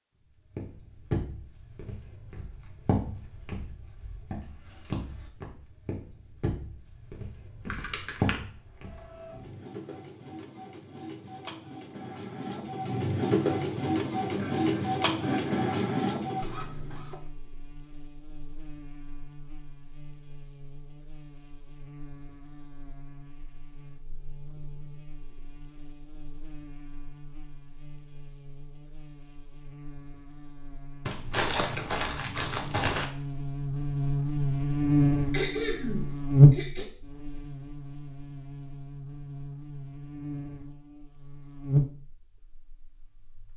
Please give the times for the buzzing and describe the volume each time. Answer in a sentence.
The buzzing can be heard from 16.5 to 43.5 s, getting louder then quieter.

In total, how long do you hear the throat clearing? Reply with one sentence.
You can hear the throat clearing for 3 seconds altogether.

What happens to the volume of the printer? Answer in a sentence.
The loudness of the printer goes up.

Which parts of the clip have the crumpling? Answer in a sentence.
You can hear the crumpling from 7.7 to 8.4 s and from 31.1 to 33.0 s.